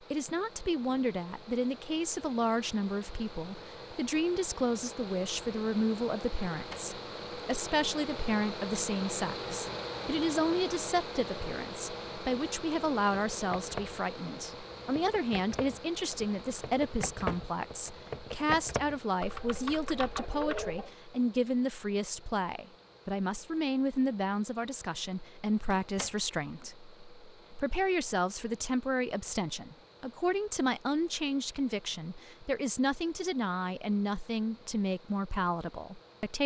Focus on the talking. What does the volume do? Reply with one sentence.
The loudness of the talking stays about the same.